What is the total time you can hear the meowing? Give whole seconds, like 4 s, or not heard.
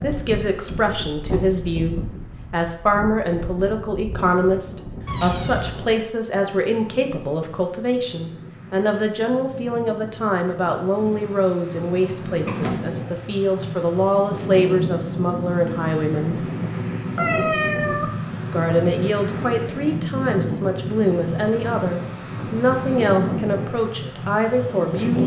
2 s.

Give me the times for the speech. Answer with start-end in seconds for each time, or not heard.
0.0-16.4, 18.5-25.2.